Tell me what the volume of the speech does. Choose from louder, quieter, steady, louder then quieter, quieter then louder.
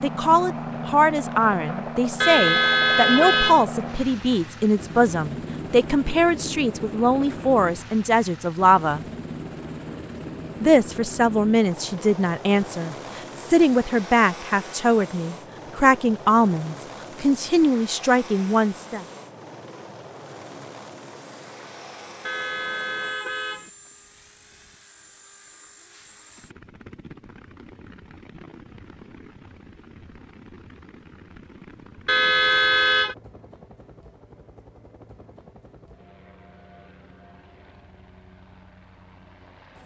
steady.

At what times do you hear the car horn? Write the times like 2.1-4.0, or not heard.
2.2-3.6, 22.2-23.7, 32.0-33.1.